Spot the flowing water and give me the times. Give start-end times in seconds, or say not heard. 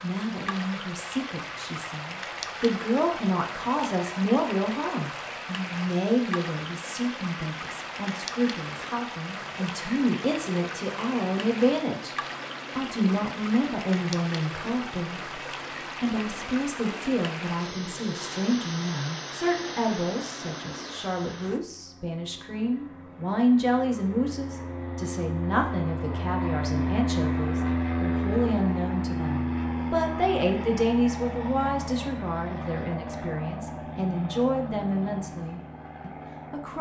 0.0-21.6.